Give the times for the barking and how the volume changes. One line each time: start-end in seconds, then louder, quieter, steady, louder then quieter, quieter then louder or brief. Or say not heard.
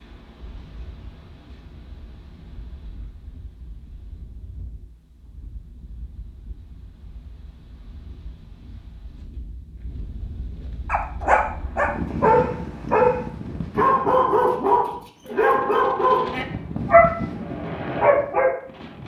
10.8-18.6 steady.